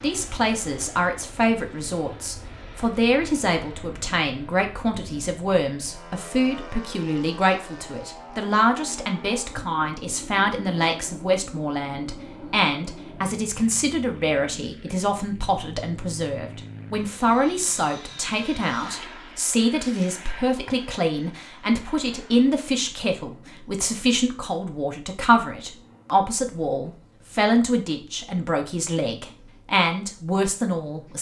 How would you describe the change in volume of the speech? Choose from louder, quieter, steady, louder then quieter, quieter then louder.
steady.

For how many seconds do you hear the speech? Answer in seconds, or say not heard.
31 s.